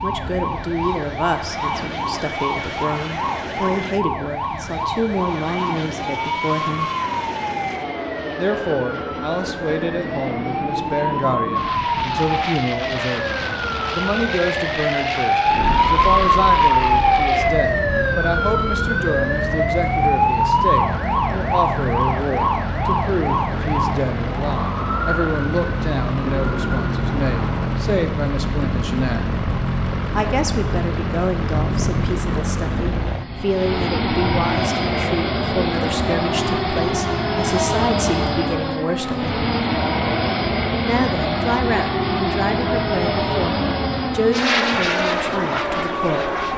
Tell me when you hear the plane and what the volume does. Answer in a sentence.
The plane can be heard from 0.0 to 46.5 s, getting louder.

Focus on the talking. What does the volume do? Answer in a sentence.
The volume of the talking stays about the same.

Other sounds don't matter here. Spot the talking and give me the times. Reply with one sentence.
The talking can be heard from 0.0 to 6.9 s, from 8.3 to 29.3 s, from 30.1 to 39.5 s and from 40.9 to 46.3 s.